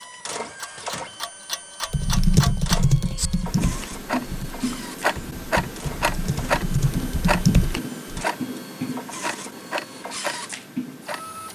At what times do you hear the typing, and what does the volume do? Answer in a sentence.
The typing can be heard from 1.9 to 8.2 s, getting quieter then louder.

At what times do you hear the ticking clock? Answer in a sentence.
You can hear the ticking clock from 0.0 to 11.4 s.